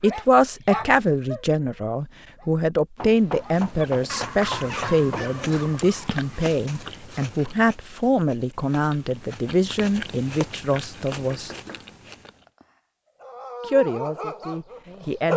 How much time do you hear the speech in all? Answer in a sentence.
The speech can be heard for 13 seconds in total.